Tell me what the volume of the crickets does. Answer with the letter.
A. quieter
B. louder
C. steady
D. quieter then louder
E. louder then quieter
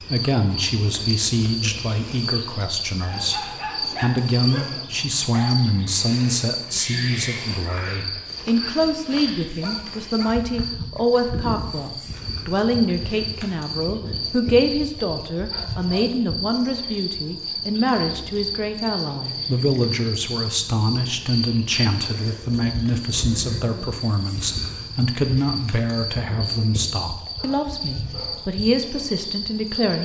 C.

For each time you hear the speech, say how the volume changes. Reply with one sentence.
You can hear the speech from 0.1 to 30.0 s, at a steady volume.